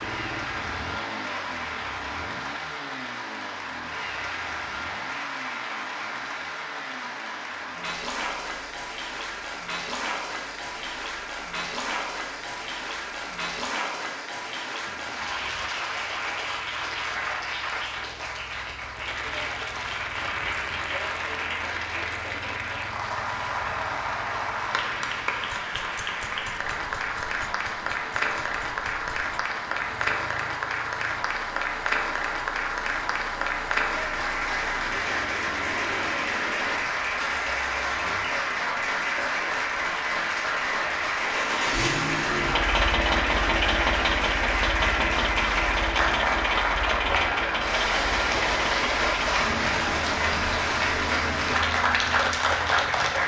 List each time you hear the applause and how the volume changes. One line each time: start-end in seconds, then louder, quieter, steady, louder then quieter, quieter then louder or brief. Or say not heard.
0.0-53.2 louder.